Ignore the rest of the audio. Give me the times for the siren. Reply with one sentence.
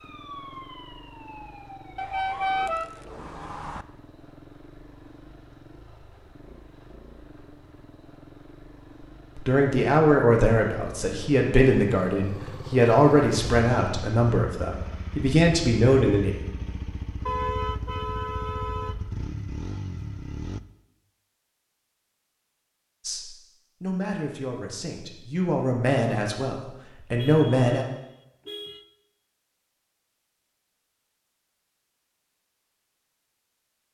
The siren can be heard from 0.0 to 2.9 s.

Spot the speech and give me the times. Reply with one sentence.
You can hear the speech from 9.3 to 16.4 s and from 23.1 to 27.9 s.